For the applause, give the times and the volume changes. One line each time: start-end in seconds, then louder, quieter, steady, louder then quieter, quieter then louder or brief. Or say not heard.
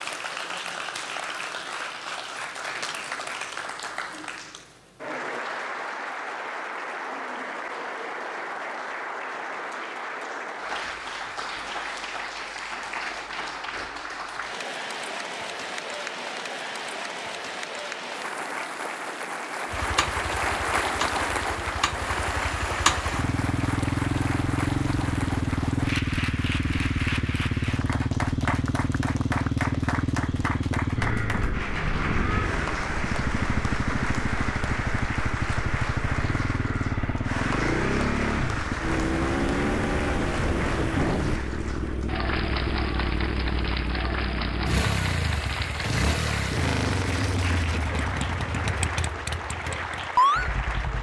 0.0-50.9 steady.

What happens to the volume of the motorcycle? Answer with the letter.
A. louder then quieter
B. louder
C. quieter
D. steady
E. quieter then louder
D.